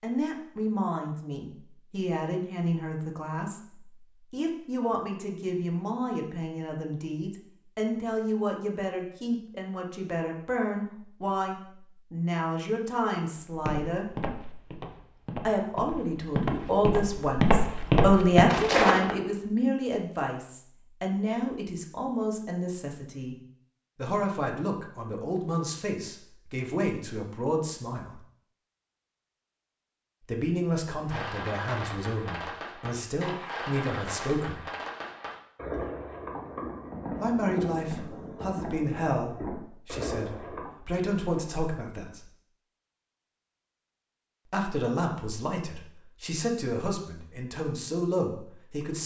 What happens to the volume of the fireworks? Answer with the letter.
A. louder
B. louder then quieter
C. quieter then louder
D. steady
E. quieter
D.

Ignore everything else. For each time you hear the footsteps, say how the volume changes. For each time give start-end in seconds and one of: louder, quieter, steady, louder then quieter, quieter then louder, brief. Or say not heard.
13.5-19.1 louder.